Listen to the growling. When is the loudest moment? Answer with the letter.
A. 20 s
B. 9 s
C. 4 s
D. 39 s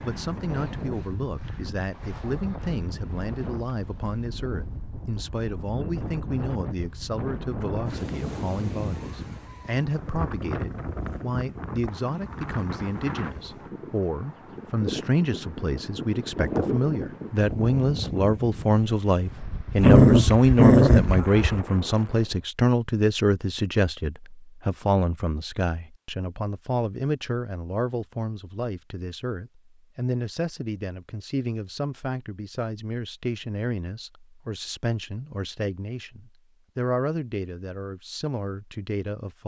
A.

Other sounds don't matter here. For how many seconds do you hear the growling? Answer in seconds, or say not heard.
2 s.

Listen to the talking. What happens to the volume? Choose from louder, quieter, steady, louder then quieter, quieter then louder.
louder then quieter.